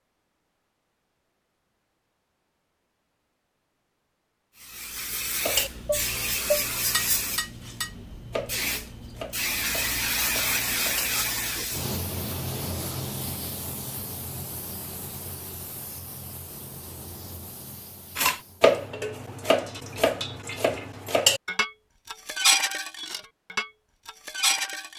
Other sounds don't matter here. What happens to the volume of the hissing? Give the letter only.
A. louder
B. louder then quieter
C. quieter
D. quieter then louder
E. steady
C.